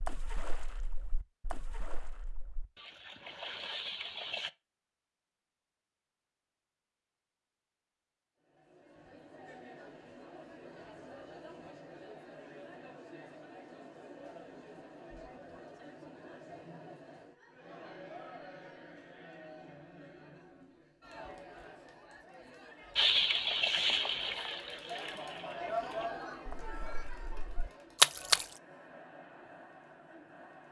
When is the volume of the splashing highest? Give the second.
28 s.